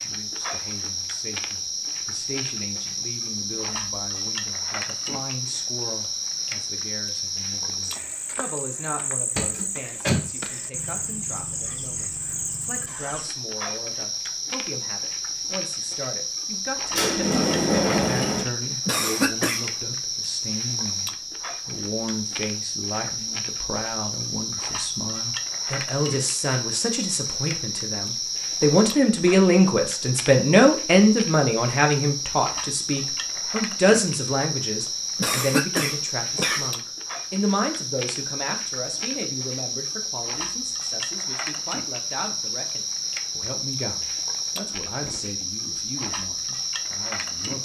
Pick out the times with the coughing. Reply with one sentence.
The coughing can be heard from 18.9 to 19.7 s and from 35.1 to 36.7 s.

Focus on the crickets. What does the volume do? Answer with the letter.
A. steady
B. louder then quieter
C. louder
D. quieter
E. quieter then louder
A.